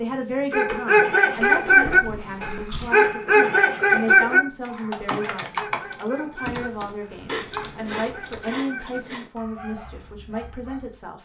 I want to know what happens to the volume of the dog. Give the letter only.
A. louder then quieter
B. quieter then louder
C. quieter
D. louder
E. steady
C.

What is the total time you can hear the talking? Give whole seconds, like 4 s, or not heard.
11 s.